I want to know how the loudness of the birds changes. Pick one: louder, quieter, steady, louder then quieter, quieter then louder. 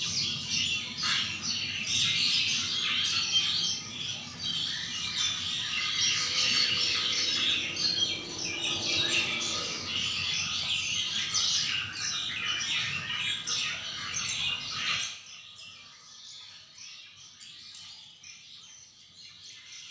quieter.